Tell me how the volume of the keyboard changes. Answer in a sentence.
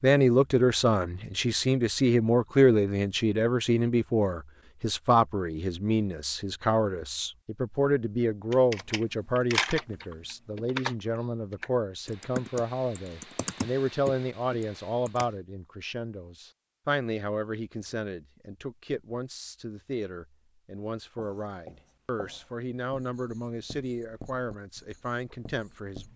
The loudness of the keyboard goes down.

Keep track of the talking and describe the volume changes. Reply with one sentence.
The volume of the talking goes down.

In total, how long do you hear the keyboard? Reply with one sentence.
You can hear the keyboard for 7 seconds altogether.